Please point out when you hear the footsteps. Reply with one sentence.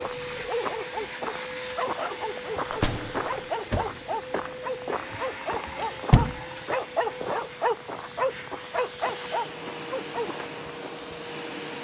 You can hear the footsteps from 0.0 to 11.1 s.